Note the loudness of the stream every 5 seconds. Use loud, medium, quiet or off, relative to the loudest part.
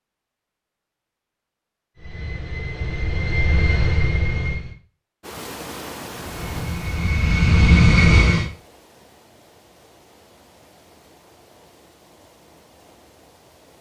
off, loud, quiet.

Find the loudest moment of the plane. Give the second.
8 s.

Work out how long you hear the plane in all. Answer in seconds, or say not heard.
5 s.